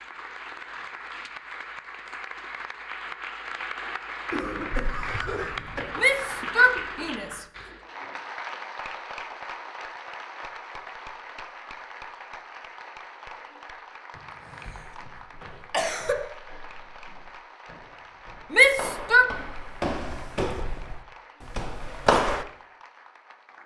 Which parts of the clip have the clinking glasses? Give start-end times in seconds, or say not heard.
not heard.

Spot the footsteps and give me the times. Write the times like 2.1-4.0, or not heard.
14.9-22.4.